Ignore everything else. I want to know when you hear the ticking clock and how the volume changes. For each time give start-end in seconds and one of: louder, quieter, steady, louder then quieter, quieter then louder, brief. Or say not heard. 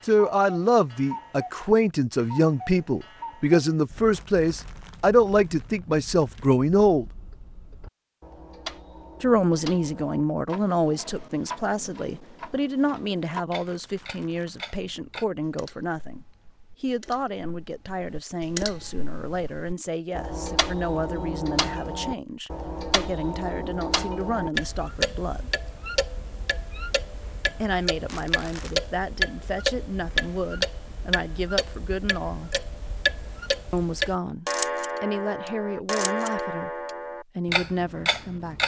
0.0-38.6 louder.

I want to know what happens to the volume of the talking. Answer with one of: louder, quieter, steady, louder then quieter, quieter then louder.
quieter.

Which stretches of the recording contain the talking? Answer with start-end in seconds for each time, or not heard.
0.1-7.0, 9.2-25.6, 27.6-32.5, 33.7-38.6.